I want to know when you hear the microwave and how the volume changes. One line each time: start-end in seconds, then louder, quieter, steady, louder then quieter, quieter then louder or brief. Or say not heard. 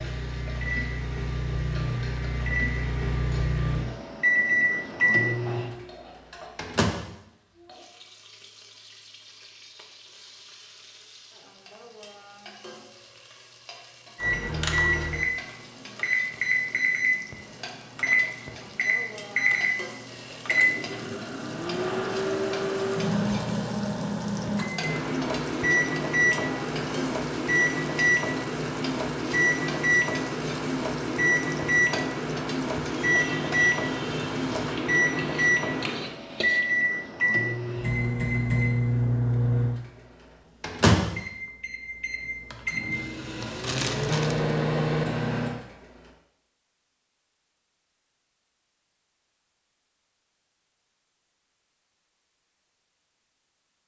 0.0-6.9 louder then quieter
14.2-45.6 steady.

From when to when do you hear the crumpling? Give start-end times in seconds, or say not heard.
43.4-44.5.